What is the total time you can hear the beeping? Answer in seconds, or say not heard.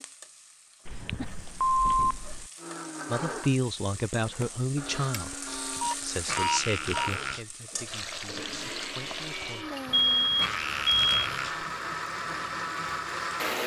5 s.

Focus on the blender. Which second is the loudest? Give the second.
13 s.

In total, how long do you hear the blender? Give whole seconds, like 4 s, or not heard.
11 s.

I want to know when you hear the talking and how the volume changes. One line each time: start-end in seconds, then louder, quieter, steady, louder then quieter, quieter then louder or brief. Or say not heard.
3.0-9.7 quieter.